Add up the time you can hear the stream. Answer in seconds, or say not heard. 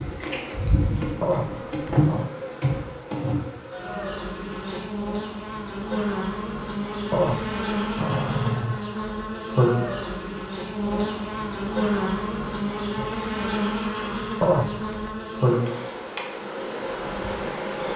not heard.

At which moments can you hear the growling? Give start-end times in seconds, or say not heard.
1.2-2.3, 7.1-8.8, 14.4-15.1.